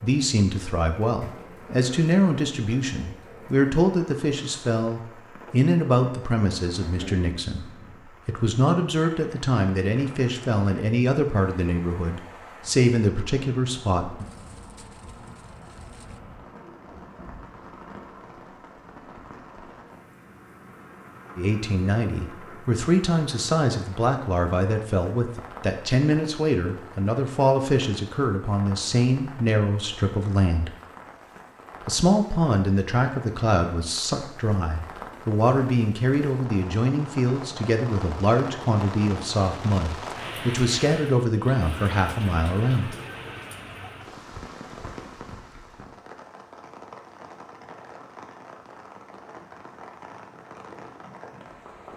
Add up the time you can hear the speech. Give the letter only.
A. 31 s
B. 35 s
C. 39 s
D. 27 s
B.